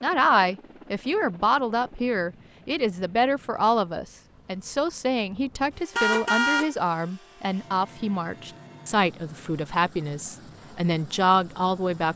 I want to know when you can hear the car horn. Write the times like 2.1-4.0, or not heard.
6.0-6.7.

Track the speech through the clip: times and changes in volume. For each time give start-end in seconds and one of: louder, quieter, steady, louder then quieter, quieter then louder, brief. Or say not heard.
0.0-12.1 steady.